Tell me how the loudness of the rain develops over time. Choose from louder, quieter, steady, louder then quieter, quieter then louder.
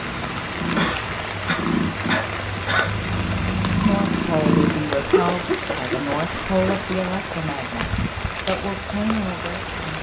steady.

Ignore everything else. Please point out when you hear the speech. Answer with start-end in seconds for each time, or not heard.
3.8-9.9.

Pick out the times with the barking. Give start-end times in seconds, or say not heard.
not heard.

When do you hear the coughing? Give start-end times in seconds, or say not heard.
0.8-3.0, 5.1-7.0.